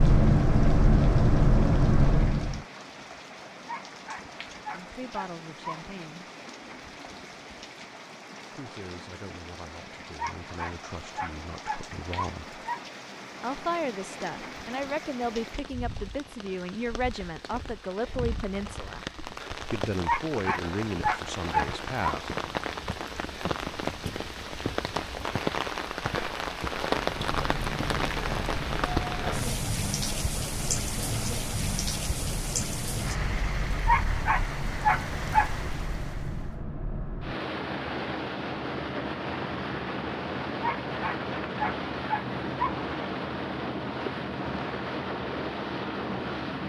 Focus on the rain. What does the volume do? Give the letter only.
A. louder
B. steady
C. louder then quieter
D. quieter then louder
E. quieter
A.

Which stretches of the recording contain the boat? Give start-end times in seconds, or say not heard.
0.0-2.6, 27.1-46.6.